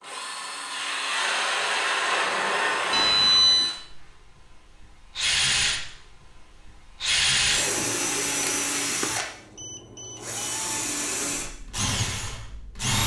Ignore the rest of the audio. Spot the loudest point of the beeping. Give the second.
3 s.